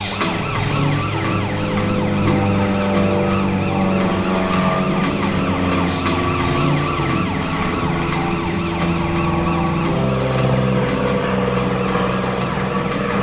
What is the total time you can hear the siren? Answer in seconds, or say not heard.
13 s.